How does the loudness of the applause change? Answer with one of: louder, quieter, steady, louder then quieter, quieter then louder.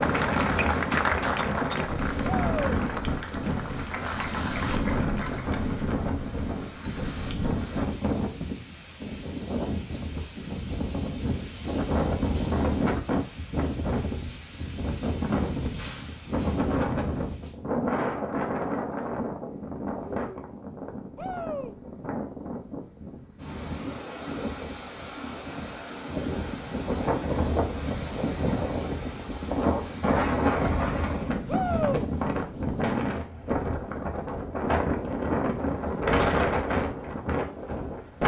quieter.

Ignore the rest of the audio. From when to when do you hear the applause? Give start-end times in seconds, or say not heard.
0.0-5.7.